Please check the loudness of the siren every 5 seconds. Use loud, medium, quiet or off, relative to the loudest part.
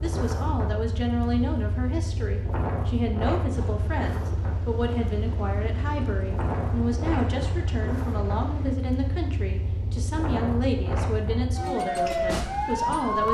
medium, medium, loud.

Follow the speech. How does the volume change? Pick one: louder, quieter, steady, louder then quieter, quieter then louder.
steady.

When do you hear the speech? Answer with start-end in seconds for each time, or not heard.
0.0-13.3.